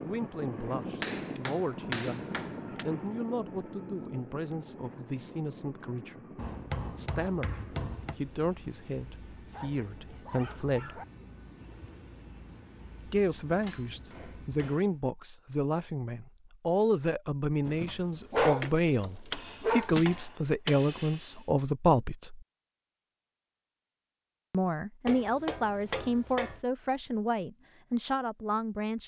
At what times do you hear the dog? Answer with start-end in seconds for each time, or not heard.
9.5-11.1, 17.6-20.2.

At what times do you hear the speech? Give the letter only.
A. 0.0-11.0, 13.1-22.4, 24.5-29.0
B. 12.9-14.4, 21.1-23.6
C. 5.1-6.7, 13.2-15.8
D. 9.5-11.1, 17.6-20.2
A.